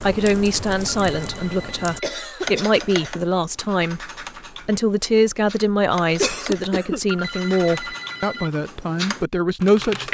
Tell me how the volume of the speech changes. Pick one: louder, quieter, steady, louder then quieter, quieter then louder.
steady.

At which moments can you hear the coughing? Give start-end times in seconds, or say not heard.
2.0-3.2, 6.2-7.0.